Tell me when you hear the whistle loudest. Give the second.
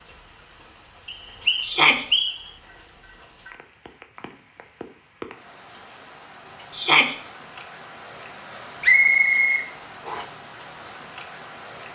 9 s.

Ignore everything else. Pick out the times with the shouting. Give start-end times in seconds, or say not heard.
1.6-2.0, 6.7-7.2.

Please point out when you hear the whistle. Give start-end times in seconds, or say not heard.
1.1-2.5, 8.8-10.2.